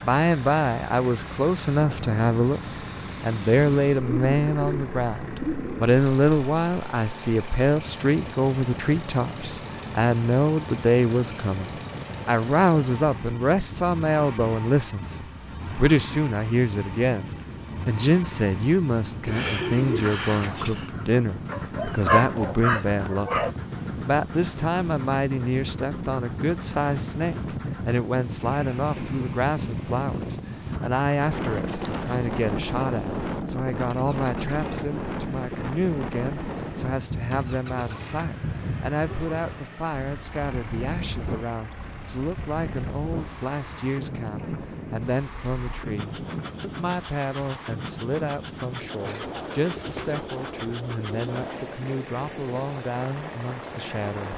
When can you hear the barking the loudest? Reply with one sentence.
The loudest moment of the barking is at 22 seconds.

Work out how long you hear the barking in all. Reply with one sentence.
You can hear the barking for 2 seconds altogether.